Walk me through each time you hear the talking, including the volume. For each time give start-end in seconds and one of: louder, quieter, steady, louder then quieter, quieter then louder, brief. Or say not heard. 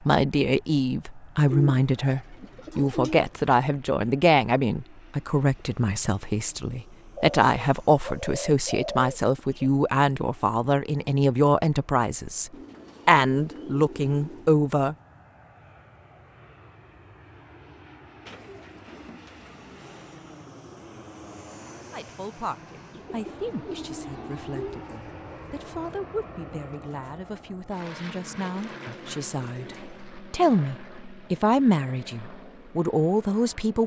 0.1-14.9 steady
21.9-33.8 louder.